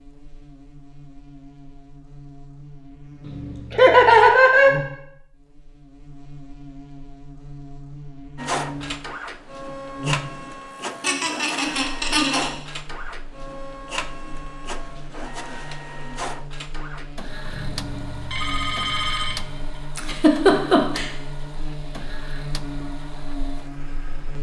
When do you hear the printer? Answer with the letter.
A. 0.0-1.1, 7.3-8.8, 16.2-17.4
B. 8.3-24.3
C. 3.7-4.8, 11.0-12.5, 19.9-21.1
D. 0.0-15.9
B.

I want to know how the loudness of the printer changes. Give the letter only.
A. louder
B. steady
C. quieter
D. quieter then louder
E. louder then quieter
C.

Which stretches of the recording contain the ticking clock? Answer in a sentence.
You can't hear the ticking clock here.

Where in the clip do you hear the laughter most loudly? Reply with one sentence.
The volume of the laughter peaks at 4 seconds.